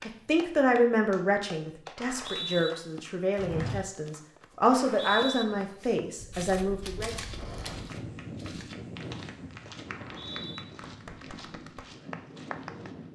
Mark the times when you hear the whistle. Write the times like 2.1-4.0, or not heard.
1.9-2.7, 4.7-5.5, 9.8-10.7.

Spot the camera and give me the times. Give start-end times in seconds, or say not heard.
6.8-7.8.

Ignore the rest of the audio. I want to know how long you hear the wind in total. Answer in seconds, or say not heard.
7 s.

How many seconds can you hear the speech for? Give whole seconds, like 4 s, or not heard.
7 s.